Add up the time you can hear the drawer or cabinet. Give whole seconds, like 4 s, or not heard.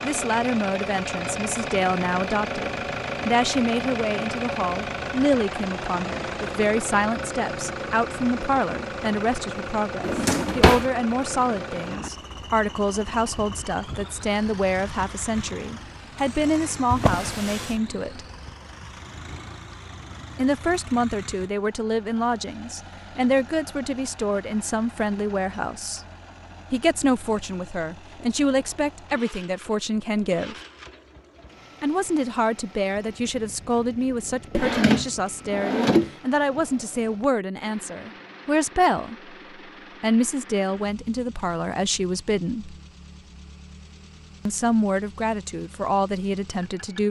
3 s.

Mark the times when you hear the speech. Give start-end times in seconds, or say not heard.
0.0-18.2, 20.4-26.0, 26.7-30.6, 31.8-39.4, 40.0-42.8, 44.5-47.0.